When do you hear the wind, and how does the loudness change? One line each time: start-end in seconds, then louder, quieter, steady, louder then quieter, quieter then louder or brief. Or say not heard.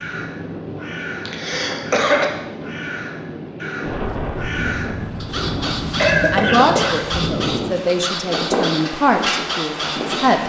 0.0-10.4 louder.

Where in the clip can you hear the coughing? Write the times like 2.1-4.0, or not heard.
1.2-2.2, 5.5-7.0.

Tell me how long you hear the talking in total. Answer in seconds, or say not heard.
5 s.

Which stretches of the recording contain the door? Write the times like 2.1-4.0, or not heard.
not heard.